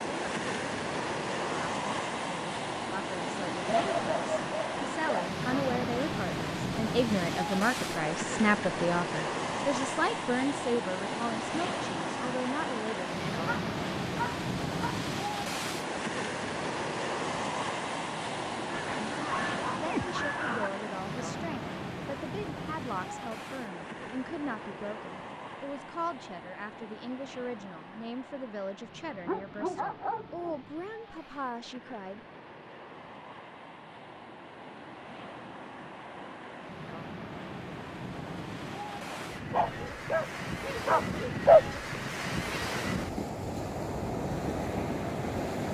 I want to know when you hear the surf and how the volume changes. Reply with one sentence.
You can hear the surf from 0.0 to 45.7 s, getting quieter then louder.